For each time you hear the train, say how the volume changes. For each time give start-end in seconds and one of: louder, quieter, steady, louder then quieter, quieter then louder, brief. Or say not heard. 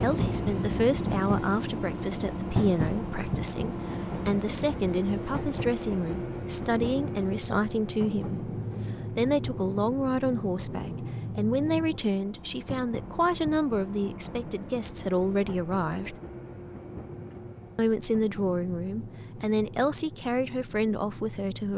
0.0-21.7 quieter.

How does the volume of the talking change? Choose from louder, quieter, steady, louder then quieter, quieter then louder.
steady.